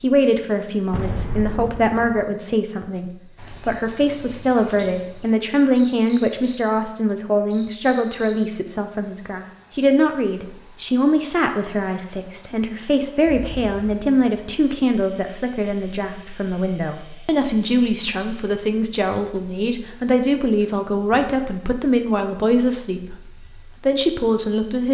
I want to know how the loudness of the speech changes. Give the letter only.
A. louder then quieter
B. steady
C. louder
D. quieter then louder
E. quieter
B.